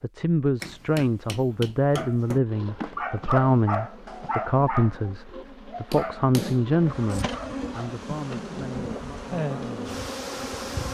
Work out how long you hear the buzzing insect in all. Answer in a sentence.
You can hear the buzzing insect for 8 seconds altogether.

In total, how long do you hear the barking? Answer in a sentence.
You can hear the barking for 6 seconds altogether.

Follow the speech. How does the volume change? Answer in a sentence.
The volume of the speech goes down.